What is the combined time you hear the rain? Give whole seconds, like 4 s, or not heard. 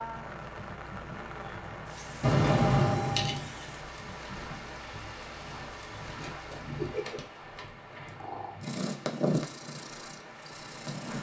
11 s.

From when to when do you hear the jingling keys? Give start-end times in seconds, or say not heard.
2.2-3.4, 6.3-8.1.